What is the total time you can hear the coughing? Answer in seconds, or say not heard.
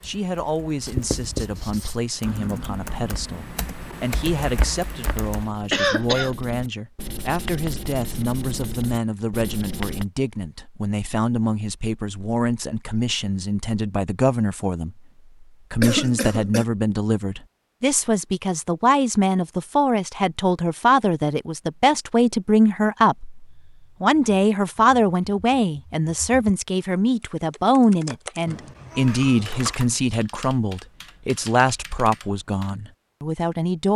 3 s.